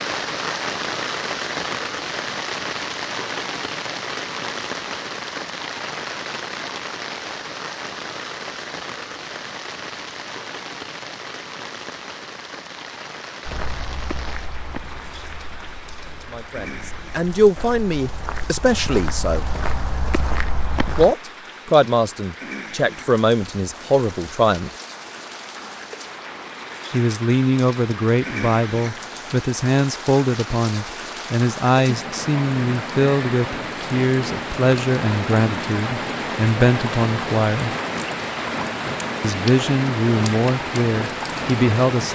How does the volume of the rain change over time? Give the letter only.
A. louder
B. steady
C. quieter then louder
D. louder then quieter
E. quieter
C.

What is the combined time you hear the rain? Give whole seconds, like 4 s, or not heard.
42 s.